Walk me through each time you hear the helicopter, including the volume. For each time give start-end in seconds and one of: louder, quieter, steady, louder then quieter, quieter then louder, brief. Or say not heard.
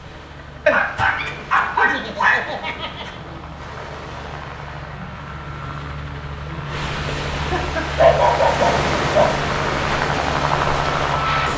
0.0-11.5 louder.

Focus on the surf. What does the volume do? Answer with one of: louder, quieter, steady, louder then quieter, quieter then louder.
louder.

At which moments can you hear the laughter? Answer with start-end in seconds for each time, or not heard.
1.8-3.2, 7.3-8.1.